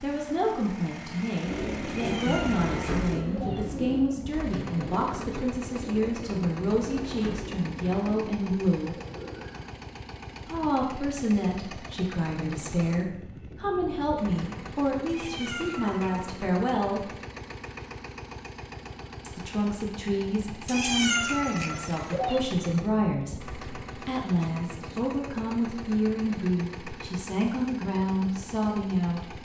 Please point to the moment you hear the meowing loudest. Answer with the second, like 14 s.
21 s.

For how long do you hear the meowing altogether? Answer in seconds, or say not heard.
5 s.